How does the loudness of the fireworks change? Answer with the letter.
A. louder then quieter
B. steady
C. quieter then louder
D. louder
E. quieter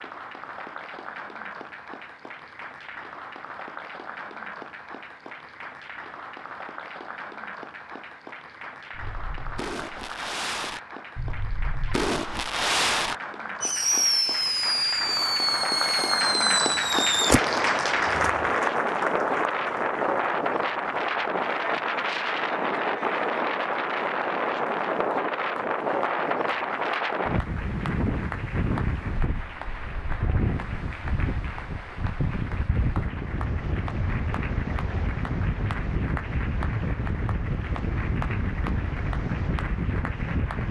D.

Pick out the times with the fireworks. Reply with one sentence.
You can hear the fireworks from 8.9 to 17.4 s.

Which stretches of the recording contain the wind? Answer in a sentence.
The wind can be heard from 17.1 to 40.6 s.